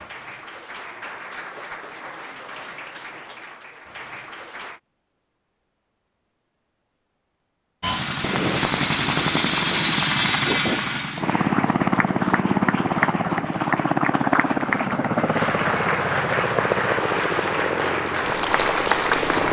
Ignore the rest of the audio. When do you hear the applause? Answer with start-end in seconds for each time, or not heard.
0.0-4.8, 11.2-19.4.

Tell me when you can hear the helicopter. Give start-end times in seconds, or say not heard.
7.8-19.4.